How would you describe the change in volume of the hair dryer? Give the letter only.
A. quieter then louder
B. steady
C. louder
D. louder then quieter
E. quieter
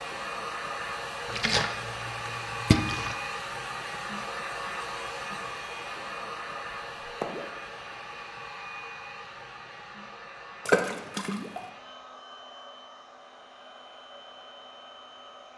E.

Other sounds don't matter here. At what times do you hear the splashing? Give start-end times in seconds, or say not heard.
1.2-3.1, 7.0-7.5, 10.7-11.6.